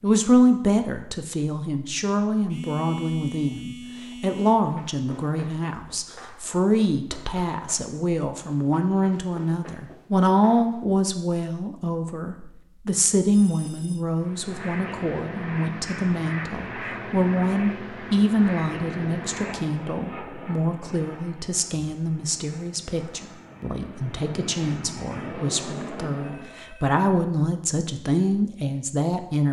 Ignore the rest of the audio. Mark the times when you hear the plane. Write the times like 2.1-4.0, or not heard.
14.2-26.6.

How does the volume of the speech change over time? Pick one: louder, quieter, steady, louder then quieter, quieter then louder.
steady.